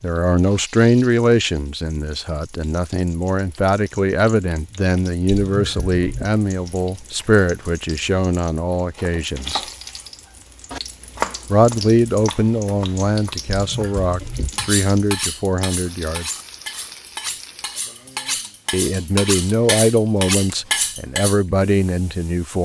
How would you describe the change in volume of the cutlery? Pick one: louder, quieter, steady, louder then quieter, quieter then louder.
louder.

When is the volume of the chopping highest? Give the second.
11 s.